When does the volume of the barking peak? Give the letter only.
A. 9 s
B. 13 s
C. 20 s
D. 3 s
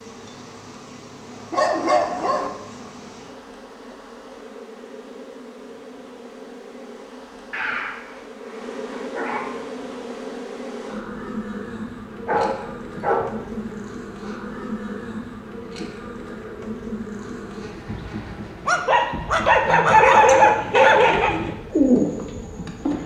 C.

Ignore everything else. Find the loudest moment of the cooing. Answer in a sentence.
The volume of the cooing peaks at 22 seconds.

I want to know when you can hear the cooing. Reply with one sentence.
The cooing can be heard from 20.2 to 23.0 s.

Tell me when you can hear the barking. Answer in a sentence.
The barking can be heard from 1.5 to 2.5 s, from 7.5 to 9.6 s, from 12.2 to 13.8 s and from 18.6 to 21.4 s.